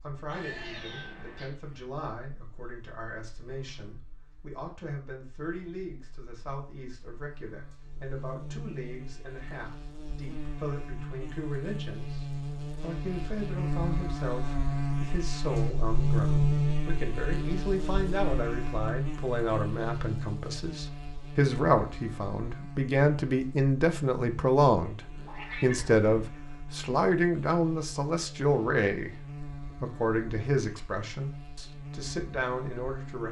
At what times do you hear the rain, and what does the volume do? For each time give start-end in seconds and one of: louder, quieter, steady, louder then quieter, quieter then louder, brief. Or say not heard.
not heard.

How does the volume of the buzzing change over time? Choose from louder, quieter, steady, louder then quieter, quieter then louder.
louder then quieter.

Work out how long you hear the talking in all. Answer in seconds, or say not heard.
33 s.